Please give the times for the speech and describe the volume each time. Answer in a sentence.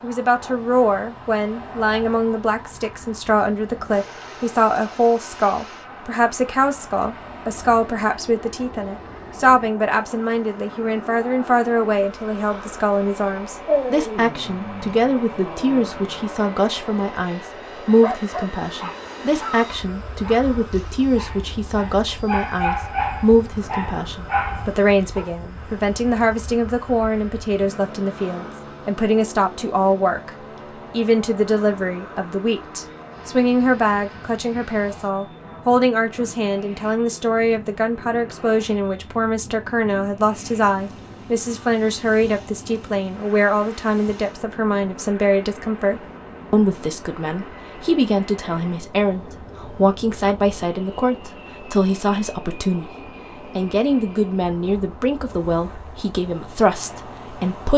You can hear the speech from 0.0 to 57.7 s, at a steady volume.